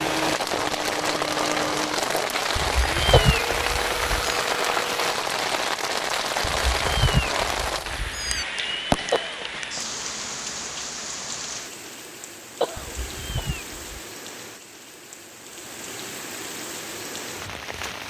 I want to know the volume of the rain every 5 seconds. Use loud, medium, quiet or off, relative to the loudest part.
loud, loud, medium, medium.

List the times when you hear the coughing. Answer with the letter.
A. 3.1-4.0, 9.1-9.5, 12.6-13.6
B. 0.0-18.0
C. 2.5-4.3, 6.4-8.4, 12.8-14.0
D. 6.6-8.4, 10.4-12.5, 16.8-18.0
A.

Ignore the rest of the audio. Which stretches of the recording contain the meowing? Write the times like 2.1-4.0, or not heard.
2.5-4.3, 6.4-8.4, 12.8-14.0.